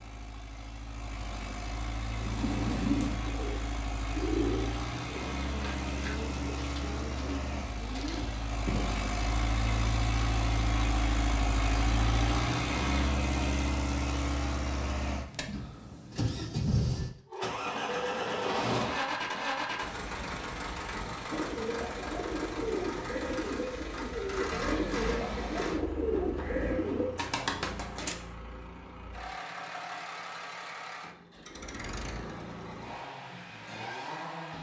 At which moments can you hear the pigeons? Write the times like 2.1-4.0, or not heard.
2.2-9.1, 21.3-28.1.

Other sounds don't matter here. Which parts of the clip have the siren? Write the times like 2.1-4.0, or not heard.
not heard.